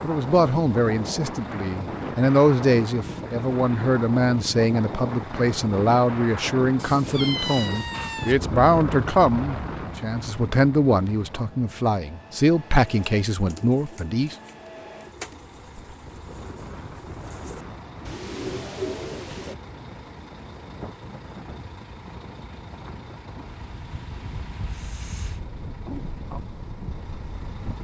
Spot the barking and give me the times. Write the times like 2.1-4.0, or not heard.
not heard.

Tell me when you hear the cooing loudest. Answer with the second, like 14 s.
19 s.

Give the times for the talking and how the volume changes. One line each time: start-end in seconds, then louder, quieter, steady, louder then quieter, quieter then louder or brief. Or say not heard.
0.0-14.3 steady.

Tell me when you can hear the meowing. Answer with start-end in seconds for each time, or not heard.
6.8-8.3.